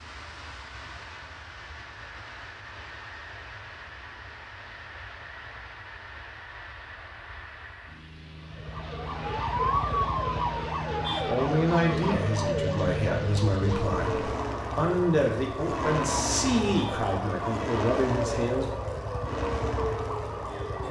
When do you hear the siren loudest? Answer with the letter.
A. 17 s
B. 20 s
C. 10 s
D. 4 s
C.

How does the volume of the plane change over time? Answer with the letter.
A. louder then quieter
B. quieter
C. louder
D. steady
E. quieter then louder
C.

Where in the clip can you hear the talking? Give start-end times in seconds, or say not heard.
11.2-18.7.